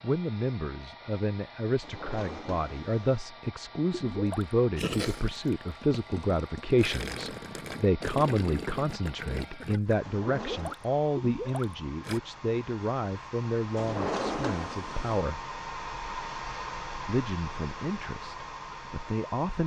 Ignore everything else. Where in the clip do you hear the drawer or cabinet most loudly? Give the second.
14 s.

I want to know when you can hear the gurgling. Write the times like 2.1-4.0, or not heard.
3.9-12.2.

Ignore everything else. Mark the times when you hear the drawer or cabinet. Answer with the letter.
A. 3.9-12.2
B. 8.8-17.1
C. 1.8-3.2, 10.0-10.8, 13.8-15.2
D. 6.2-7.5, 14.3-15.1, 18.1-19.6
C.